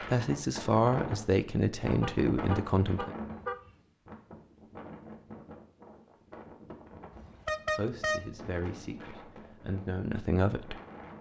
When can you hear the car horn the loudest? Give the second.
8 s.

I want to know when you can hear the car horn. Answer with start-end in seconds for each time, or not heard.
1.9-3.8, 7.1-8.3.